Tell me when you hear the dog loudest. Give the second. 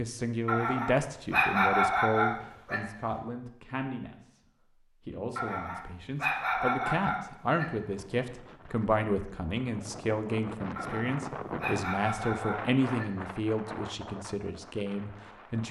2 s.